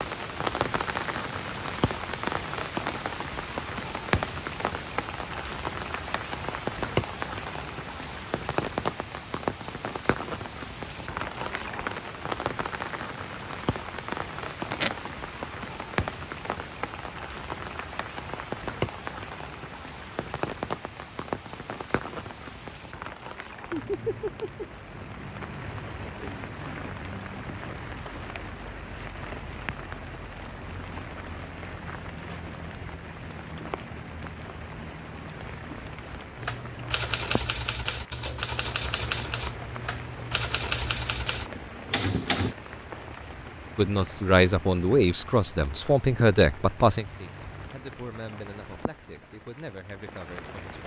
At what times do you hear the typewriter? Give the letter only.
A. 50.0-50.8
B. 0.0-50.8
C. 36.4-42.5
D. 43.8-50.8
C.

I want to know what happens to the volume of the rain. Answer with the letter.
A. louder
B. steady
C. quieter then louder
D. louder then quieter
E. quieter
E.